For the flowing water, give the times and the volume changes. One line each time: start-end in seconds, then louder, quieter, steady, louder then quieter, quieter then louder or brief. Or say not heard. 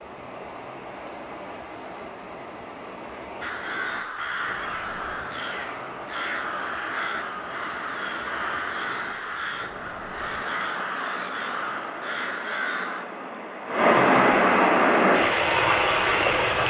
0.0-16.6 louder.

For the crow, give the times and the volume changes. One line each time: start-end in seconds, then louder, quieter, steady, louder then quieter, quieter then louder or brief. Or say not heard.
3.4-13.1 steady.